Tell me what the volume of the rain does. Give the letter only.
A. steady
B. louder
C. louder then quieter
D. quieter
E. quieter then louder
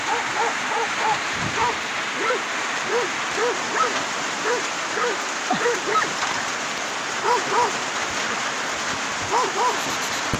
A.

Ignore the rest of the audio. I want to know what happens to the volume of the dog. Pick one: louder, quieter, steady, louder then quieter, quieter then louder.
steady.